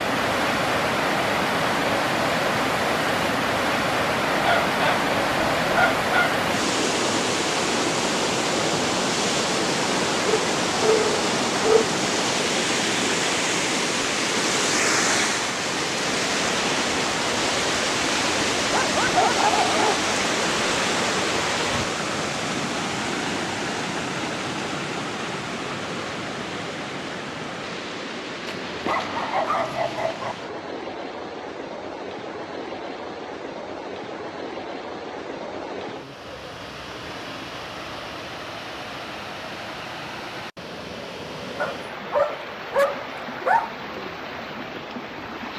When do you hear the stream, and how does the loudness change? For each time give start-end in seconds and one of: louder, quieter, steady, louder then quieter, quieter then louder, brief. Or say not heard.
0.0-45.5 quieter.